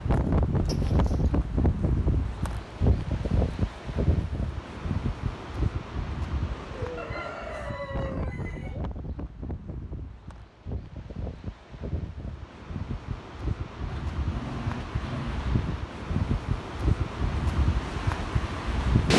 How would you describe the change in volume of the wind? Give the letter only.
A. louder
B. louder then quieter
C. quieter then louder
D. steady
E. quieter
C.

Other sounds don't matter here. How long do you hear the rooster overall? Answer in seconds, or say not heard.
2 s.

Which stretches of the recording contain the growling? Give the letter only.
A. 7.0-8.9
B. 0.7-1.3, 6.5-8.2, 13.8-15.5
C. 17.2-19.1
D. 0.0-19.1
B.